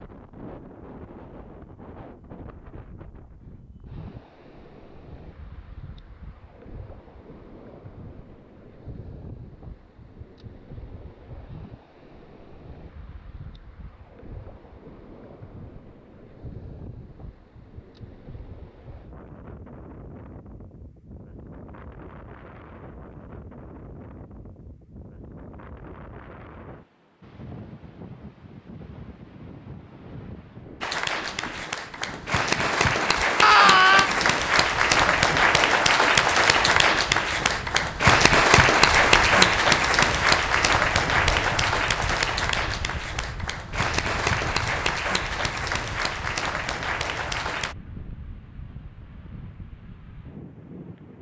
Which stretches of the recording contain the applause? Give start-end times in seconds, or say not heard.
30.8-47.8.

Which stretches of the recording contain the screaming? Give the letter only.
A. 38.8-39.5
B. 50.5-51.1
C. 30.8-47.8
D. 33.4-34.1
D.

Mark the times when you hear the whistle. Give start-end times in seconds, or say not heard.
not heard.